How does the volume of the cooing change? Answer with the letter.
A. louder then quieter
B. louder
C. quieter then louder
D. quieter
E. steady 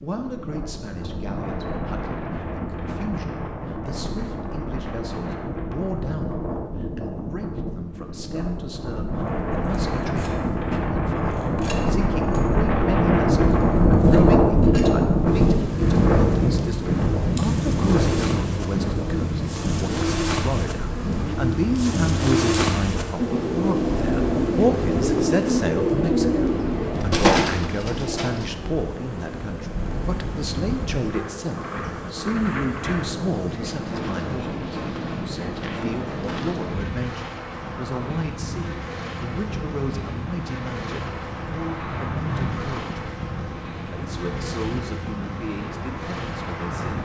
B.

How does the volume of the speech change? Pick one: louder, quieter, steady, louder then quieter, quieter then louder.
louder then quieter.